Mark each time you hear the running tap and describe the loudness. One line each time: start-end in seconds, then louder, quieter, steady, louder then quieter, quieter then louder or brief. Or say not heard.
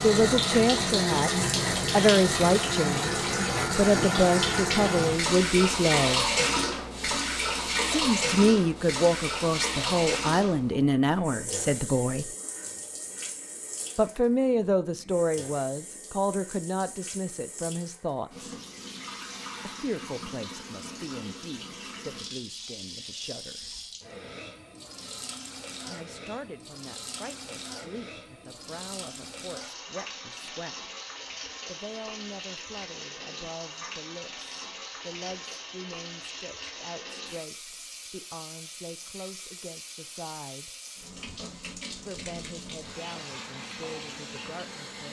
0.0-45.0 quieter.